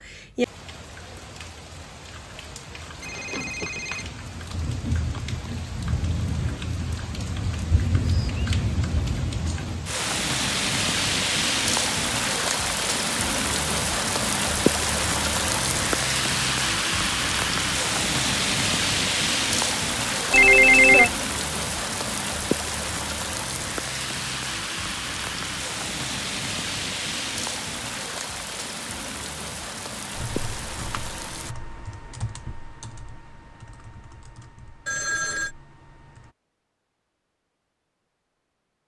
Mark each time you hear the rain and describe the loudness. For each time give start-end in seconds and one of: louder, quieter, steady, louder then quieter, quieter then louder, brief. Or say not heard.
0.0-31.6 louder then quieter.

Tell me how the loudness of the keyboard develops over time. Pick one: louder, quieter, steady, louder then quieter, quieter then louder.
quieter.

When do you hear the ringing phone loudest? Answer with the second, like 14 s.
21 s.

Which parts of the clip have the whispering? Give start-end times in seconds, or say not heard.
not heard.